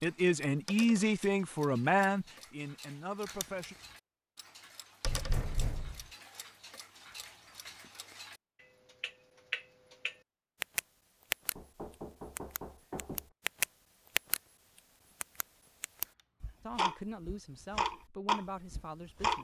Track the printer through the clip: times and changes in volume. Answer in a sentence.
The printer can't be heard in this clip.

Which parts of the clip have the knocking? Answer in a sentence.
You can hear the knocking from 5.0 to 6.1 s and from 11.6 to 13.3 s.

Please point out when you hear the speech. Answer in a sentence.
The speech can be heard from 0.0 to 3.8 s and from 16.6 to 19.3 s.